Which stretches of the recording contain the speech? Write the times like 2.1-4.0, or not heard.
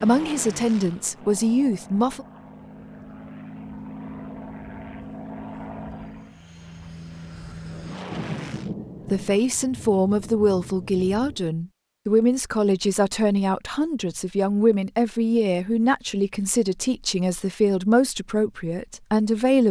0.0-2.2, 9.1-19.6.